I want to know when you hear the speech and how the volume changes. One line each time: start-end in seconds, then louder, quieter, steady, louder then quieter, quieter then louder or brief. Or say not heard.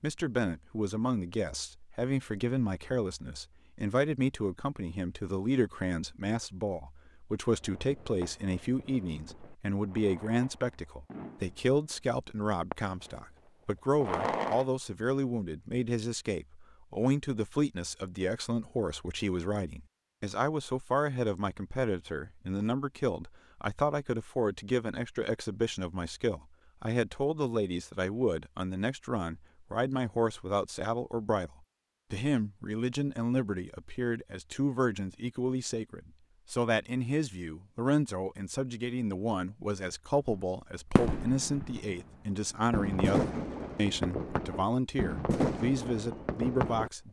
0.0-31.5 steady
32.1-47.0 steady.